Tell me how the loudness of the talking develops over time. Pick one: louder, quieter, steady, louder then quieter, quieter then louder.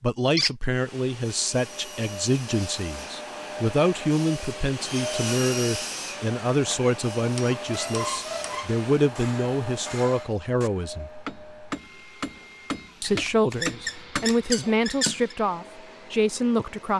steady.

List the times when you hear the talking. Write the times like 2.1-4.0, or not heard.
0.0-11.1, 13.0-16.9.